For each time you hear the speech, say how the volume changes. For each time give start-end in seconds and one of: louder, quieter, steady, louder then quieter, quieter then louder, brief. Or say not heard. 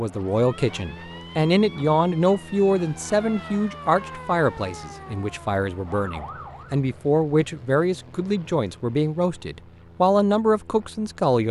0.0-11.4 quieter then louder.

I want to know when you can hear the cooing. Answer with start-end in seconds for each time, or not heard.
not heard.